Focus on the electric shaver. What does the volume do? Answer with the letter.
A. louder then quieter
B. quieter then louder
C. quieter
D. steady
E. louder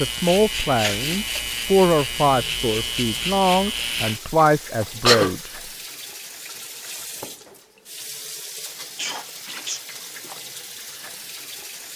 D.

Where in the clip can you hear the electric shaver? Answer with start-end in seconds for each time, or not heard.
0.0-4.2.